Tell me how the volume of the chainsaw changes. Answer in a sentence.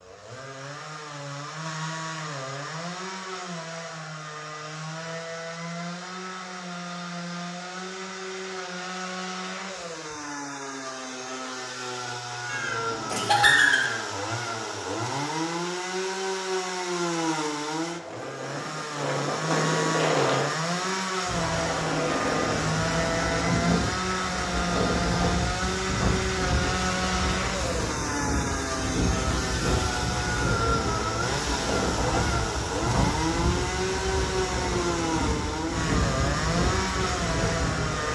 The loudness of the chainsaw goes up.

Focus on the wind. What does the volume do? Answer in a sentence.
The loudness of the wind stays about the same.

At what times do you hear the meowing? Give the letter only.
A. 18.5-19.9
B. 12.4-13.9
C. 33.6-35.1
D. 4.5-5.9
B.